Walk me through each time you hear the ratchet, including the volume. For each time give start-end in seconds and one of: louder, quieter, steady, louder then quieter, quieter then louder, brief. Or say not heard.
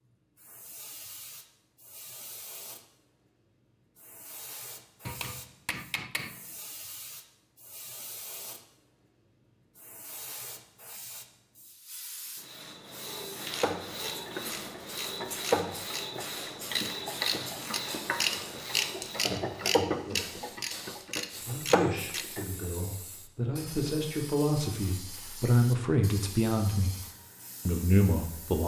13.4-22.4 louder.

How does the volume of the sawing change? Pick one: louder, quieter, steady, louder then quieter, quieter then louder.
steady.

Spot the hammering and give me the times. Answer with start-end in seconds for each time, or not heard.
5.0-6.4.